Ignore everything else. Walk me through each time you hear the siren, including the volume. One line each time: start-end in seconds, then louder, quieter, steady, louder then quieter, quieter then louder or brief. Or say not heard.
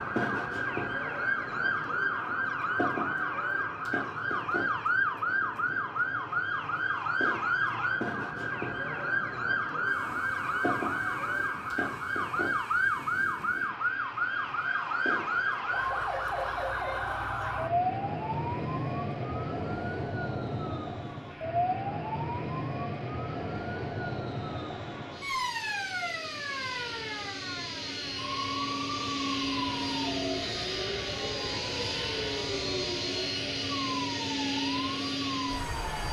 0.0-36.0 quieter.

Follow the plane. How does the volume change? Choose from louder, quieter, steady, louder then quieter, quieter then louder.
louder.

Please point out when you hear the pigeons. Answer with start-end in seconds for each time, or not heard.
not heard.